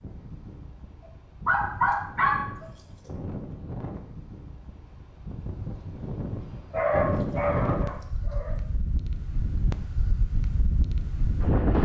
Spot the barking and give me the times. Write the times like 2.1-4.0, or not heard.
1.4-2.9, 6.7-8.6.